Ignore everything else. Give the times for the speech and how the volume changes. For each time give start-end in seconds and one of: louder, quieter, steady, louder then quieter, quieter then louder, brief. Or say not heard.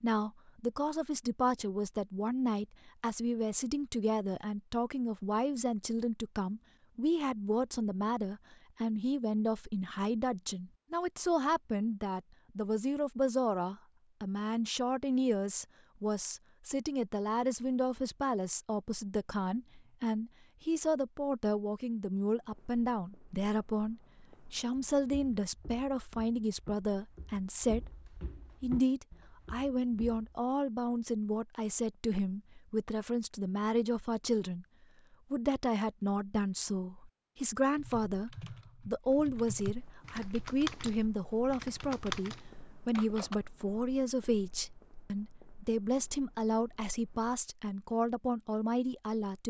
0.0-27.9 steady
28.6-34.6 steady
35.3-49.4 steady.